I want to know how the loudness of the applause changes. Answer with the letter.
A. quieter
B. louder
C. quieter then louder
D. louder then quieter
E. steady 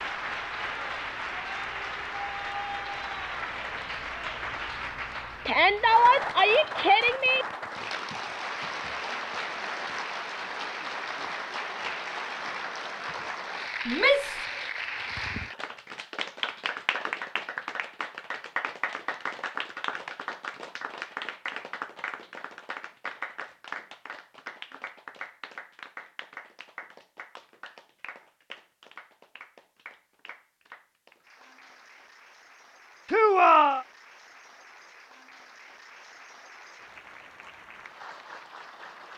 A.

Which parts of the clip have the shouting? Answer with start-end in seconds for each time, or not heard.
5.5-7.5, 13.8-14.4, 33.0-33.9.